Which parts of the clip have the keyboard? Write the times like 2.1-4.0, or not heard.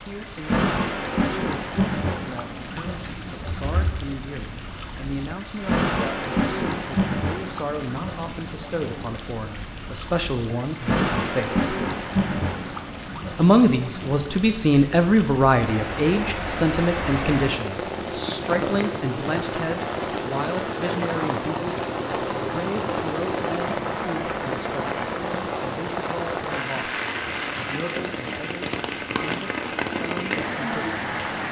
2.8-3.9.